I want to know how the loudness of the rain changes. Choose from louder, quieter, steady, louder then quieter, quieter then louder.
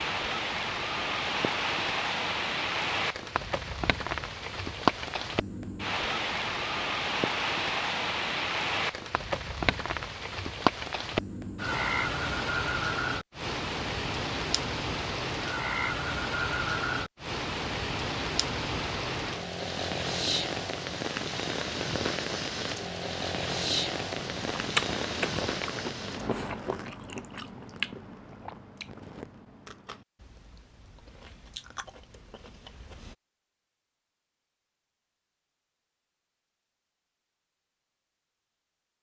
steady.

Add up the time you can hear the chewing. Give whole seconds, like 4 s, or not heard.
9 s.